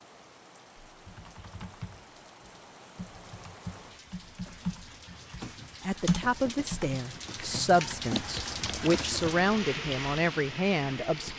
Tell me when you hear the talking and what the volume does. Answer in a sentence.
You can hear the talking from 5.8 to 11.3 s, at a steady volume.